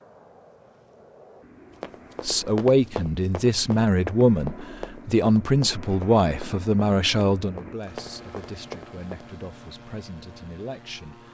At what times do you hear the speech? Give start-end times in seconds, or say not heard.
2.2-11.2.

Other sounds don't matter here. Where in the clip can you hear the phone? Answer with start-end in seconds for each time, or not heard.
not heard.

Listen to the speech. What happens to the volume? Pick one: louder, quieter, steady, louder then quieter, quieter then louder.
quieter.